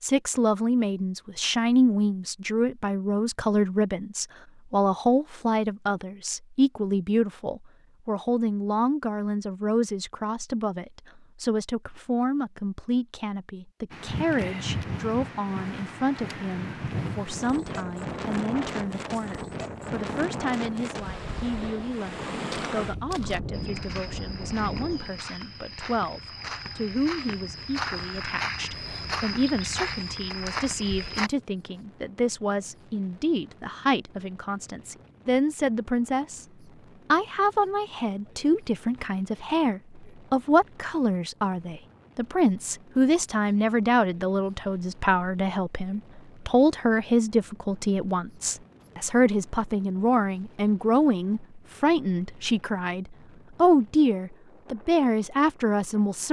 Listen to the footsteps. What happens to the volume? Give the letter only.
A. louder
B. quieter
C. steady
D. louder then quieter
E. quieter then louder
A.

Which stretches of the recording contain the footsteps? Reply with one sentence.
The footsteps can be heard from 22.1 to 31.3 s.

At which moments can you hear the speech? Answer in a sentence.
The speech can be heard from 0.0 to 36.5 s and from 37.1 to 56.2 s.